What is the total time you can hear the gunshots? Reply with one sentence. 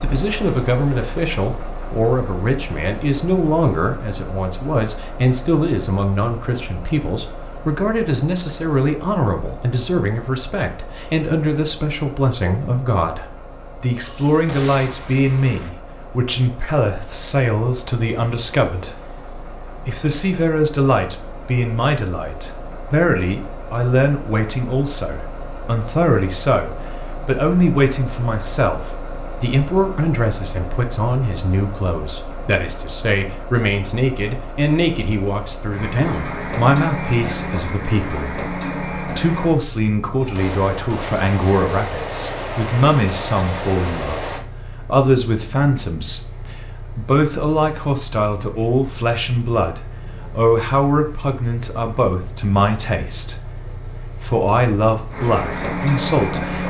You can hear the gunshots for 6 seconds altogether.